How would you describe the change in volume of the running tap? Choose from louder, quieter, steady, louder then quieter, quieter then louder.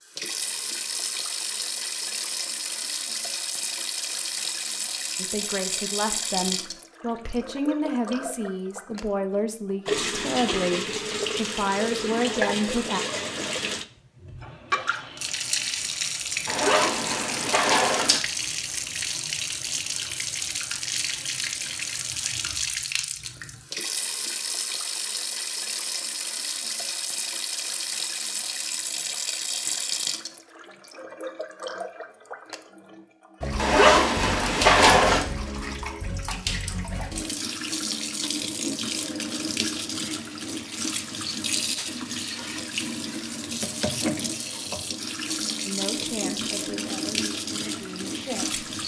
steady.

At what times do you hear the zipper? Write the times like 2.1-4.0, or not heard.
16.4-18.2, 33.5-35.2.